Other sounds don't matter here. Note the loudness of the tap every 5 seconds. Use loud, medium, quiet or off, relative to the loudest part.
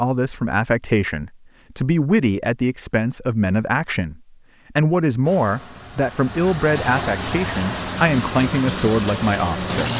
off, loud.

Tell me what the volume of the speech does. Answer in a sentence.
The loudness of the speech stays about the same.